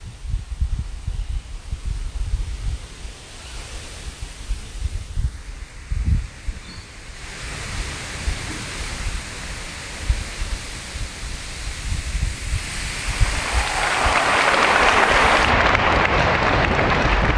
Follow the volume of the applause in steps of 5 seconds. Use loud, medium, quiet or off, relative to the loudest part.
off, off, loud, loud.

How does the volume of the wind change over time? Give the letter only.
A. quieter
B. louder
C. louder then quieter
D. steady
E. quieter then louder
B.